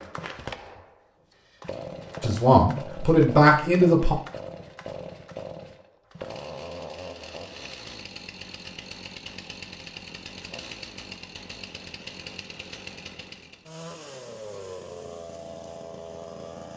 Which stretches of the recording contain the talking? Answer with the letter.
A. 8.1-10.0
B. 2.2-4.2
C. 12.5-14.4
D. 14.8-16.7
B.